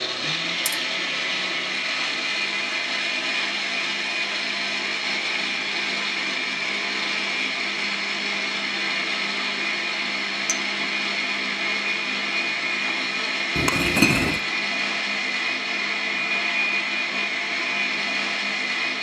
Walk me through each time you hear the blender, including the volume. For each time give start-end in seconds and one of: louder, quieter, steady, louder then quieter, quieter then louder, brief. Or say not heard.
0.0-18.9 steady.